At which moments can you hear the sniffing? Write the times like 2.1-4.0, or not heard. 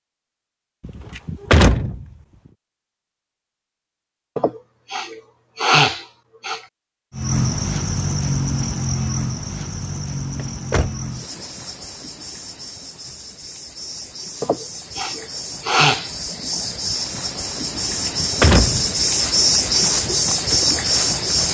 4.3-6.6, 14.4-16.1.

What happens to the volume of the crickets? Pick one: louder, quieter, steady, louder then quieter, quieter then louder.
quieter then louder.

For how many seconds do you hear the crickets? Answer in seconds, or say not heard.
14 s.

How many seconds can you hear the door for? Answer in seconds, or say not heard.
3 s.